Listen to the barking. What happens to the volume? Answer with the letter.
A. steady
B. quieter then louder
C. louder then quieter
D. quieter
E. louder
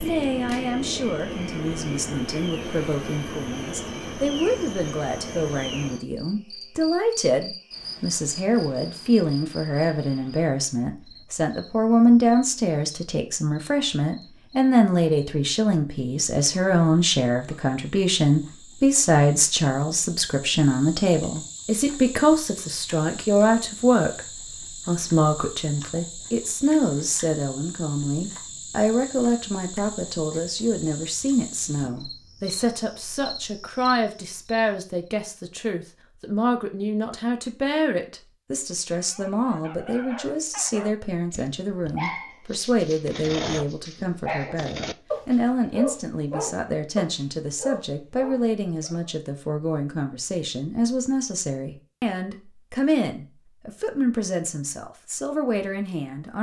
E.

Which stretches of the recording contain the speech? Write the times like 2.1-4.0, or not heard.
0.0-56.3.